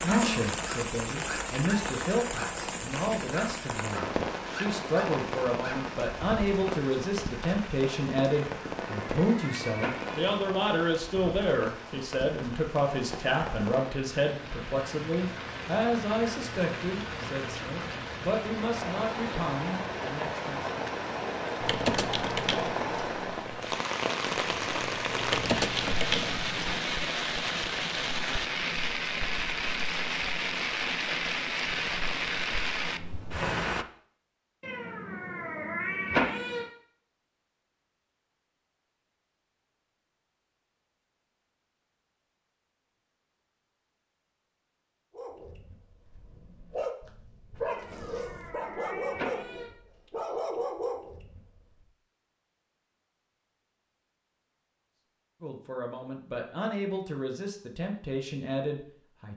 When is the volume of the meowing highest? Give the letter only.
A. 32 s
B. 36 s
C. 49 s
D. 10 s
B.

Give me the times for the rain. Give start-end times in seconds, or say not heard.
0.0-33.9.